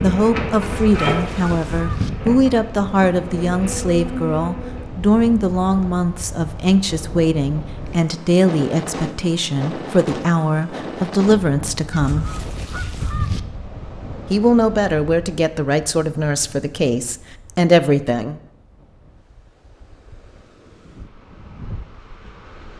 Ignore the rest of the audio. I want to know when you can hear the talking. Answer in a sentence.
You can hear the talking from 0.0 to 12.2 s and from 14.3 to 18.4 s.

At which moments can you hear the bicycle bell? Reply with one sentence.
You can't hear the bicycle bell here.